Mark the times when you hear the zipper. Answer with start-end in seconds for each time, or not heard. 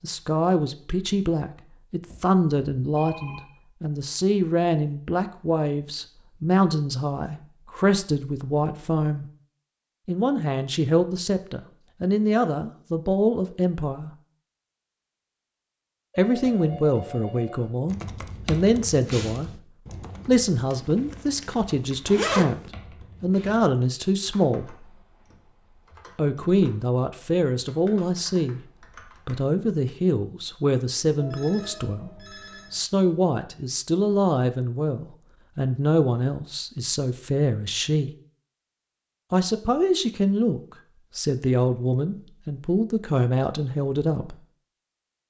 20.7-22.7.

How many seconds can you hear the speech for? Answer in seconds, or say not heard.
39 s.